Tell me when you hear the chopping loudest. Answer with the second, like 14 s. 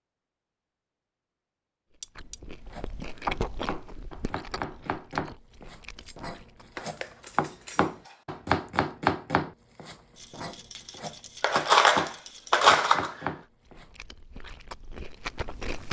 9 s.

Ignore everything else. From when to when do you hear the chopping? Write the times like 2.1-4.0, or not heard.
2.6-13.9.